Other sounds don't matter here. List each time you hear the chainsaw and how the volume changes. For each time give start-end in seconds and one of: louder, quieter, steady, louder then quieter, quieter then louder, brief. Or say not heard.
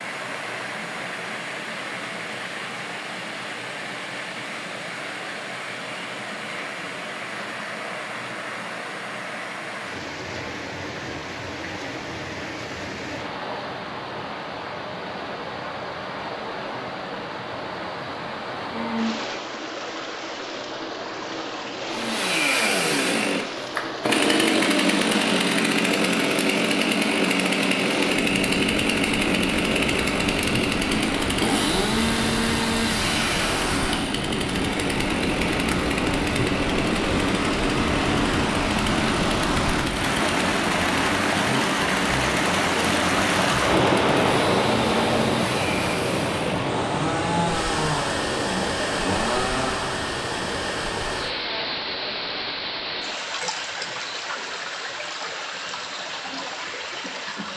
21.9-50.0 quieter.